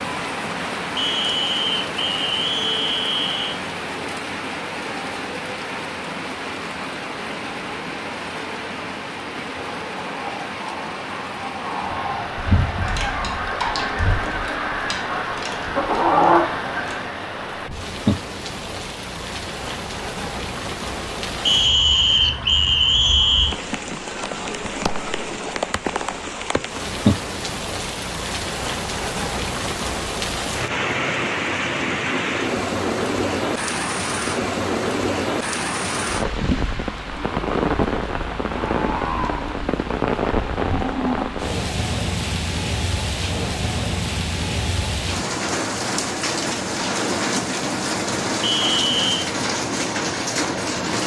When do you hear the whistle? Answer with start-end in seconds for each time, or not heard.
0.9-3.6, 21.4-23.6, 48.4-49.1.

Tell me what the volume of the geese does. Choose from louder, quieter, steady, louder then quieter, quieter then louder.
louder.